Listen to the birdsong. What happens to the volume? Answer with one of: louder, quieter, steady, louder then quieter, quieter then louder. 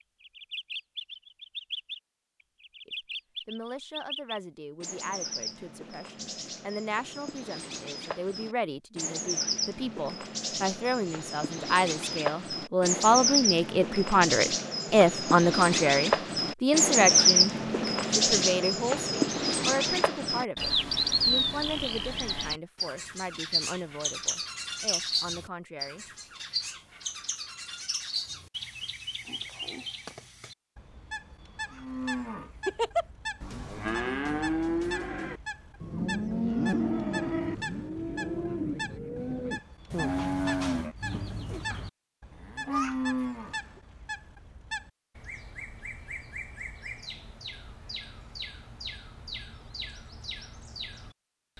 louder then quieter.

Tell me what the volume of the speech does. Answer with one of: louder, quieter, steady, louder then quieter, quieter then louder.
louder then quieter.